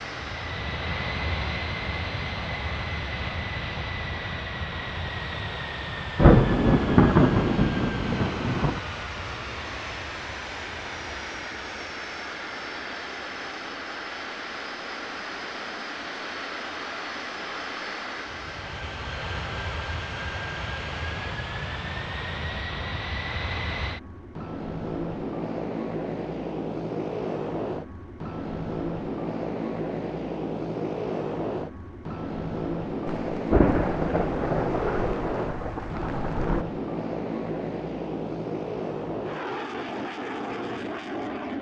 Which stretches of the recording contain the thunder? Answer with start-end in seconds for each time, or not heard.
6.2-8.8, 33.0-36.6.